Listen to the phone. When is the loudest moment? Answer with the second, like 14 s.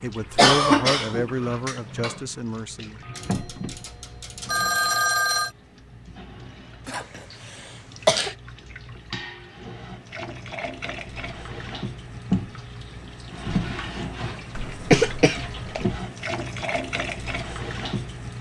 5 s.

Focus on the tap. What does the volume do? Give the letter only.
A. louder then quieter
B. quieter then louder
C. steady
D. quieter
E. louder
B.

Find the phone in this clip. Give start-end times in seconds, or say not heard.
3.1-5.5.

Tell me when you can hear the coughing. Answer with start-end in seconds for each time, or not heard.
0.3-2.1, 6.8-8.3, 14.6-15.8.